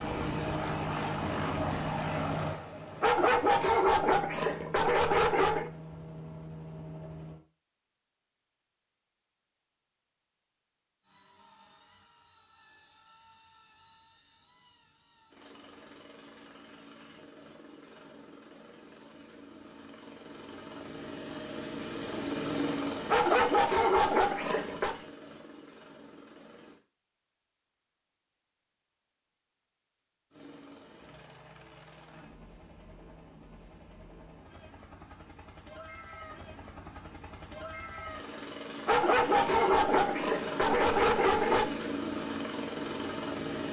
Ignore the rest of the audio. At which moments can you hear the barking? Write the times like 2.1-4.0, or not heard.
3.0-5.7, 23.1-24.9, 38.9-41.7.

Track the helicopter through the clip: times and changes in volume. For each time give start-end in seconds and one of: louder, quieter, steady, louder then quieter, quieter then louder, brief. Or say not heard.
0.0-7.4 quieter
11.0-26.8 louder then quieter
30.3-43.6 louder.